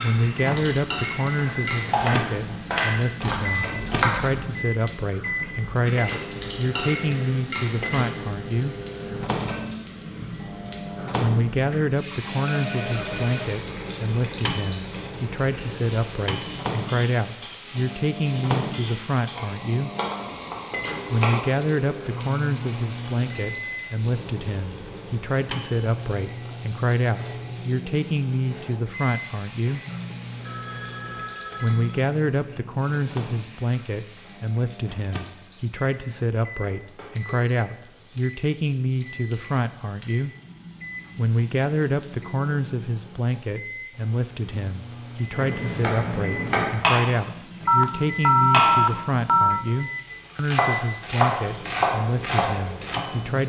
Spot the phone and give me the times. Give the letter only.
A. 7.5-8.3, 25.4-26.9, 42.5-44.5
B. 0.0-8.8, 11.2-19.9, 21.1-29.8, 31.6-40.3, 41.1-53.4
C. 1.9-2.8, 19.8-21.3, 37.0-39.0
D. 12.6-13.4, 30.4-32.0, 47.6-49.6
D.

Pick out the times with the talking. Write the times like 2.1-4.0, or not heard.
0.0-8.8, 11.2-19.9, 21.1-29.8, 31.6-40.3, 41.1-53.4.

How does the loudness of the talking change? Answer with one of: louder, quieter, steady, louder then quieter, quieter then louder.
steady.